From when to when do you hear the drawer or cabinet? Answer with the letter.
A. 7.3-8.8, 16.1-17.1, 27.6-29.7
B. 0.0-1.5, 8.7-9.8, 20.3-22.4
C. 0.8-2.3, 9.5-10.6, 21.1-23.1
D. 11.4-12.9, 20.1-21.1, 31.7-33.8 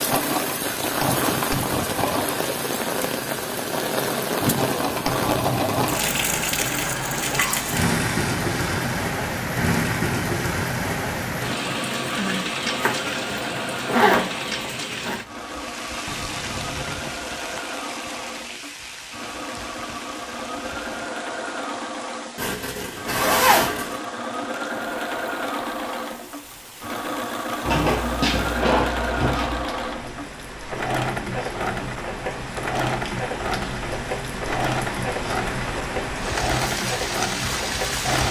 A.